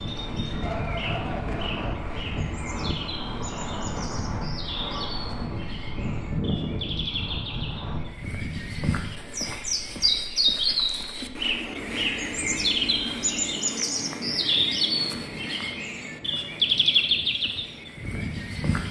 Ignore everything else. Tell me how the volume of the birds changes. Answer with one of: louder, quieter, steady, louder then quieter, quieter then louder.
louder.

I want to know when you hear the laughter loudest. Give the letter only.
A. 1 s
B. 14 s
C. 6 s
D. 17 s
A.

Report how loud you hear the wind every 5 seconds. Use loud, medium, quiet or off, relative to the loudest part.
loud, loud, quiet, medium.